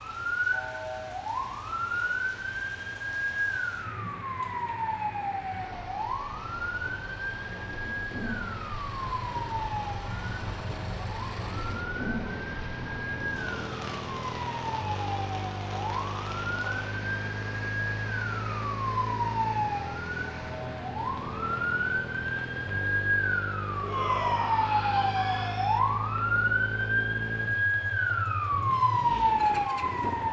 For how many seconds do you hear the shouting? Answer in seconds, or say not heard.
2 s.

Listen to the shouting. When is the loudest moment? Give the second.
24 s.